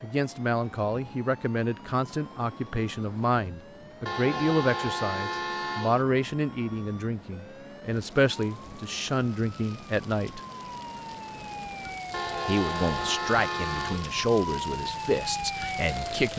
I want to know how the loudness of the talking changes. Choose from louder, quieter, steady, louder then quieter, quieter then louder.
steady.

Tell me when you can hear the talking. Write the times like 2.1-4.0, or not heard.
0.0-10.4, 12.4-16.3.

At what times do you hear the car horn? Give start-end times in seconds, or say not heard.
4.0-6.0, 12.1-14.2.